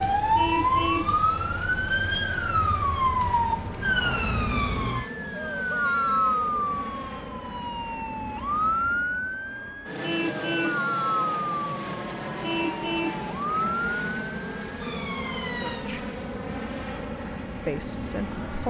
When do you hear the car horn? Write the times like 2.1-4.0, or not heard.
0.3-1.1, 10.0-10.8, 12.4-13.2.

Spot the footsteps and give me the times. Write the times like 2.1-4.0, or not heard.
not heard.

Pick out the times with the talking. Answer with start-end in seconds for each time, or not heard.
15.6-16.1, 17.6-18.6.